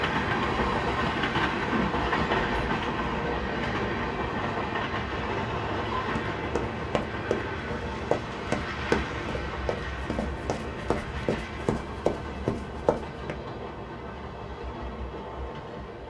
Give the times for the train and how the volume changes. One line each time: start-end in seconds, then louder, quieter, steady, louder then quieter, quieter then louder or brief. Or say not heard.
0.0-16.0 quieter.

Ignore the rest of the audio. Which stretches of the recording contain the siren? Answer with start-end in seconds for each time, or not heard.
not heard.